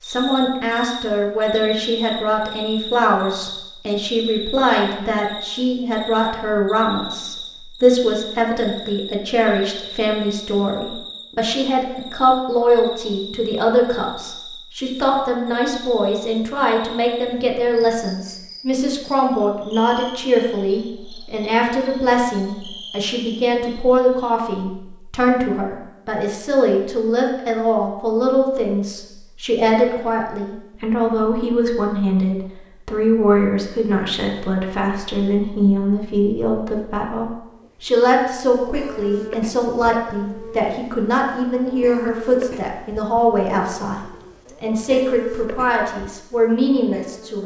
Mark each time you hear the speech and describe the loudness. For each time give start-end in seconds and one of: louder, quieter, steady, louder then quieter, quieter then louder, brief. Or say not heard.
0.0-47.4 steady.